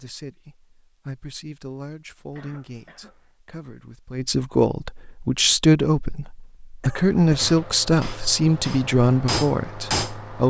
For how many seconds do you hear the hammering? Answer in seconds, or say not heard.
3 s.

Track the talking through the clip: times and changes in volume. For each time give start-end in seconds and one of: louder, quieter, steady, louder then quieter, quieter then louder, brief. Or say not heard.
0.0-10.4 louder.